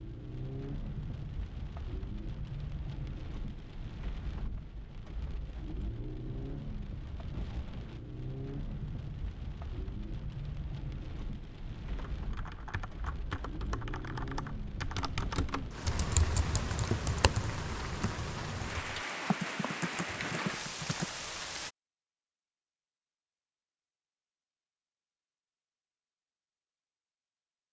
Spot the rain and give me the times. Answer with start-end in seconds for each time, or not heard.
0.0-21.7.